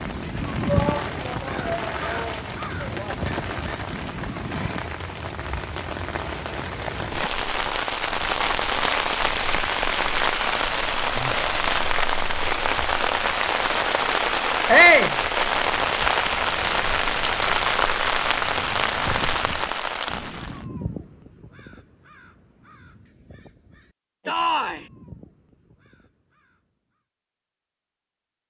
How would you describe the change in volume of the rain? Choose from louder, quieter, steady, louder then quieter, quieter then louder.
louder.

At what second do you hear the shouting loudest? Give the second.
15 s.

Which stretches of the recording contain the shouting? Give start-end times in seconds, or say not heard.
0.7-3.1, 14.7-15.2, 24.2-24.9.